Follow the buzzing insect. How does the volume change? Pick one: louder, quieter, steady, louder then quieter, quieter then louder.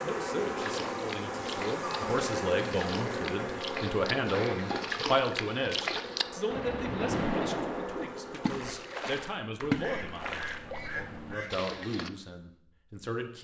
quieter.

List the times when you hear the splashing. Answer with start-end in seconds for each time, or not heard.
0.6-12.1.